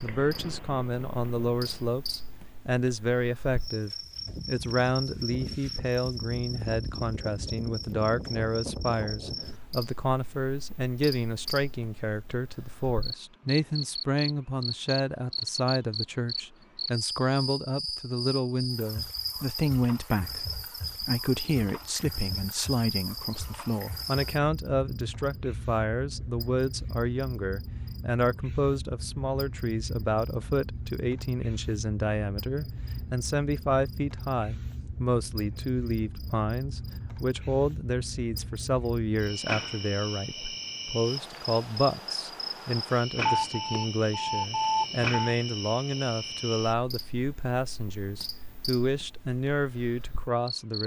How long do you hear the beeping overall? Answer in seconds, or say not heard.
2 s.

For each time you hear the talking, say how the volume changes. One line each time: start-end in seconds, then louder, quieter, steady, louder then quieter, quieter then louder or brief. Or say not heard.
0.0-50.8 steady.